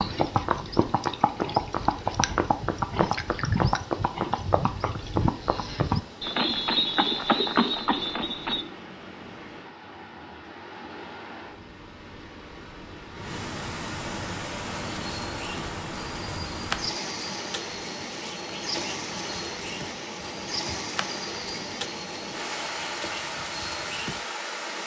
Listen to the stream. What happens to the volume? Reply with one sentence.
The volume of the stream goes up.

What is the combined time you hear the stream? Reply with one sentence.
You can hear the stream for 25 seconds altogether.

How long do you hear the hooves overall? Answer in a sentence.
You can hear the hooves for 18 seconds altogether.